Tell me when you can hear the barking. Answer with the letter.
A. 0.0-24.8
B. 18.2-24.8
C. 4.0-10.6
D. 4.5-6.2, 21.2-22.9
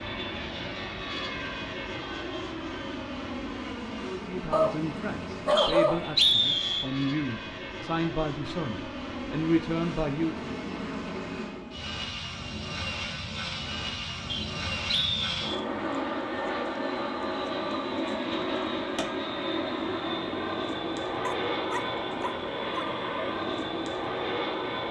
D.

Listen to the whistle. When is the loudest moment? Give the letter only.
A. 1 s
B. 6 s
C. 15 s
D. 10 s
B.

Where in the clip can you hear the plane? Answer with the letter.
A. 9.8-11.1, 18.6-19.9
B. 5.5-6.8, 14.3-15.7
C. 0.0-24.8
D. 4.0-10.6
C.